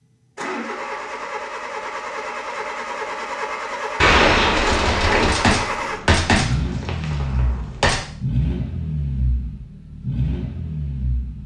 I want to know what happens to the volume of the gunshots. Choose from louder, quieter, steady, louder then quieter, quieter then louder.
quieter.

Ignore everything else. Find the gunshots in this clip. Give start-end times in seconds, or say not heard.
4.0-8.0.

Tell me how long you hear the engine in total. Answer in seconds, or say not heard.
11 s.